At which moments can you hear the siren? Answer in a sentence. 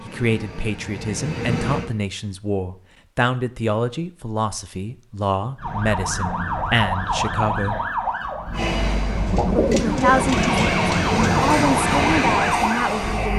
You can hear the siren from 5.5 to 13.3 s.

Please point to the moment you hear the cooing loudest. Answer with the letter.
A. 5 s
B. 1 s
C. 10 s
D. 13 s
C.